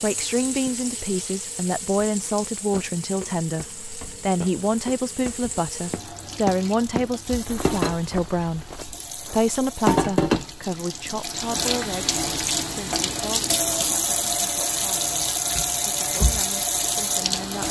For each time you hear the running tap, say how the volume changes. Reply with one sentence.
You can hear the running tap from 0.0 to 17.6 s, getting louder.